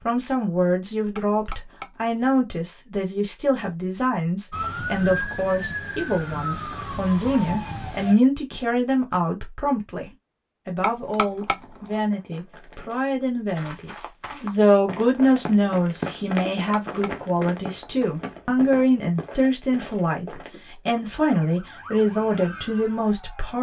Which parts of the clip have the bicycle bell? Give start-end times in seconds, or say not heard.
1.1-2.4, 10.8-12.0, 16.4-17.3.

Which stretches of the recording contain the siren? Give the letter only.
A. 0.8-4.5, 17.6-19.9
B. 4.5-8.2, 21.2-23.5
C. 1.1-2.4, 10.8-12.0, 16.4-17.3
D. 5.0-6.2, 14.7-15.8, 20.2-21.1
B.